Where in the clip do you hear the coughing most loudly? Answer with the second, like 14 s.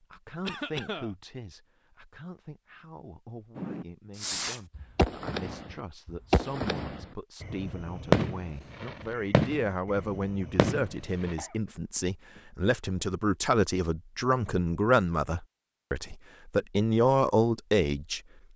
1 s.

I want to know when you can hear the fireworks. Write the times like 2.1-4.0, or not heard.
3.5-11.3.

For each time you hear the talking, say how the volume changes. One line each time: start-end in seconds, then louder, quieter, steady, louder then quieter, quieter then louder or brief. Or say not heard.
0.0-18.2 louder.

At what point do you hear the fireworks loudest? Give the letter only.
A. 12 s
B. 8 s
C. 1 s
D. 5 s
B.